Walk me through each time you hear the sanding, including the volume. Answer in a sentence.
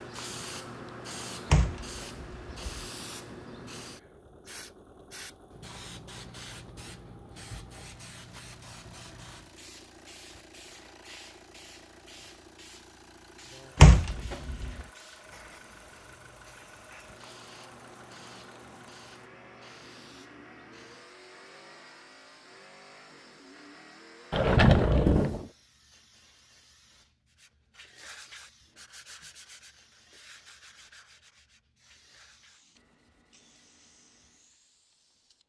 You can hear the sanding from 27.2 to 34.5 s, getting quieter.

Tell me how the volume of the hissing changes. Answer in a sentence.
The volume of the hissing goes down.